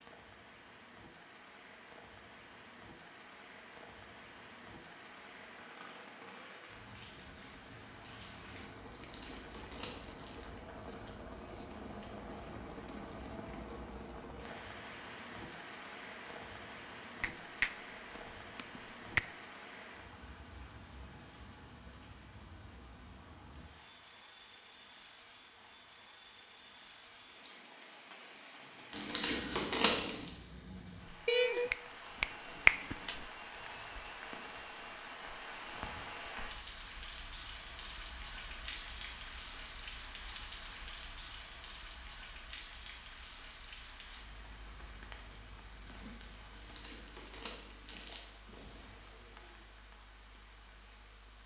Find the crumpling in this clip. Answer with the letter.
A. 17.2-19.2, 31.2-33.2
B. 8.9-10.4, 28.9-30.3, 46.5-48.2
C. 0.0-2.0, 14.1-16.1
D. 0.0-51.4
B.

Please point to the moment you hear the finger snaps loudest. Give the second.
33 s.